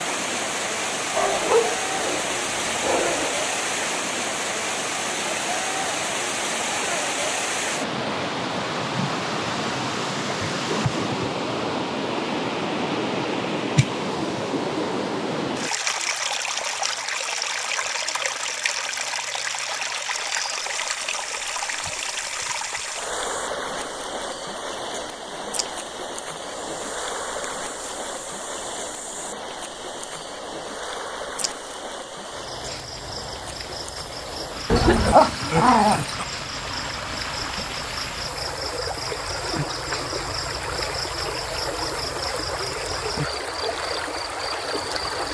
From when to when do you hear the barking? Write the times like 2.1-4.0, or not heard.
1.1-3.4, 34.7-36.2.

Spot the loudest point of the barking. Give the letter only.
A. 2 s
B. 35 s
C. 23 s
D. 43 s
B.